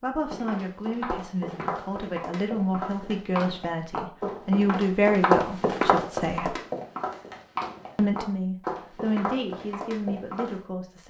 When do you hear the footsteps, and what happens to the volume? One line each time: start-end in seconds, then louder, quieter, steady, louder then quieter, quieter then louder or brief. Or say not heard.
0.2-10.7 louder then quieter.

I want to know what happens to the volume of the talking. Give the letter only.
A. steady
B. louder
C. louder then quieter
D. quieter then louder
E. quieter
C.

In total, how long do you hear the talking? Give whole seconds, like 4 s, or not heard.
10 s.